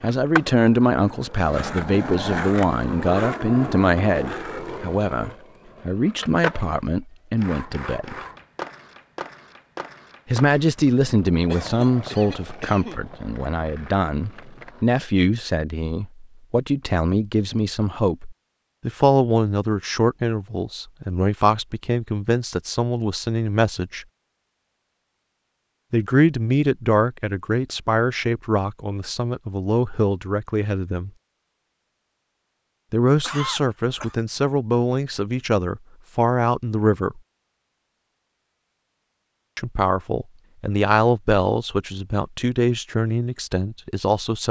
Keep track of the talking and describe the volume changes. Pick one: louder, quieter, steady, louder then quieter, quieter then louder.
steady.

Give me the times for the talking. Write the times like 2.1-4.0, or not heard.
0.0-8.2, 10.2-24.1, 25.9-31.1, 32.9-37.2, 39.5-44.4.